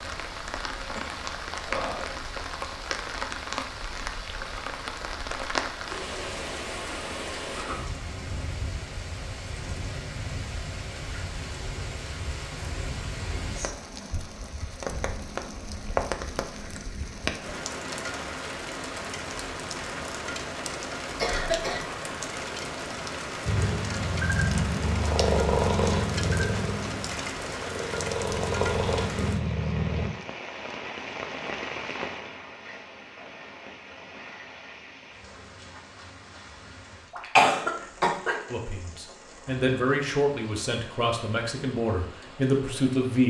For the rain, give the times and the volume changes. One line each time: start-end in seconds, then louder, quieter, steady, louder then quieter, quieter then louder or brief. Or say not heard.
0.0-43.2 quieter.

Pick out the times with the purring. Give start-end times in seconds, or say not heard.
23.4-30.1.